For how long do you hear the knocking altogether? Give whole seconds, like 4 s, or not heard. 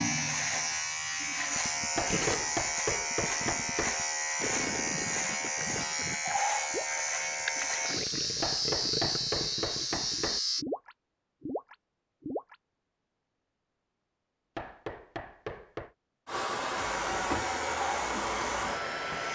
5 s.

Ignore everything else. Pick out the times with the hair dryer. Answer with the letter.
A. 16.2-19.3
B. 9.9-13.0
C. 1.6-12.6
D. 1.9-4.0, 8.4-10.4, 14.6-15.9
A.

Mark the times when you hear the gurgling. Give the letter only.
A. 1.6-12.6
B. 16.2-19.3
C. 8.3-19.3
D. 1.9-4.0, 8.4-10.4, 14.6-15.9
A.